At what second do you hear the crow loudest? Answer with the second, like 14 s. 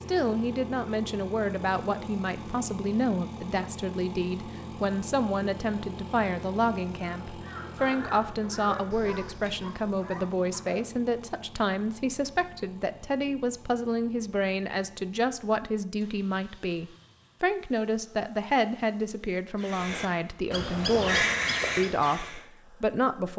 21 s.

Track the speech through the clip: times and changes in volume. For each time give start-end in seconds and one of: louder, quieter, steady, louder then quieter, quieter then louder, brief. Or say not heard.
0.1-23.3 steady.